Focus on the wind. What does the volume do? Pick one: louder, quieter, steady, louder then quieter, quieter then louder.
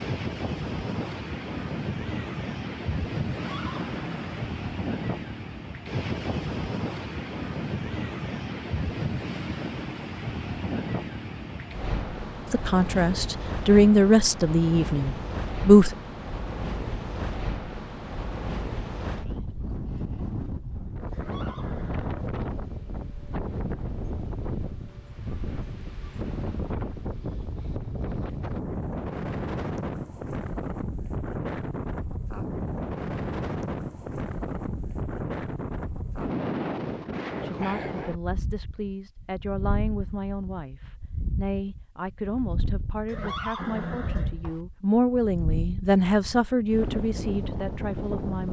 quieter.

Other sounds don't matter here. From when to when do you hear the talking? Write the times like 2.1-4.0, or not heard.
12.5-15.9, 37.4-48.4.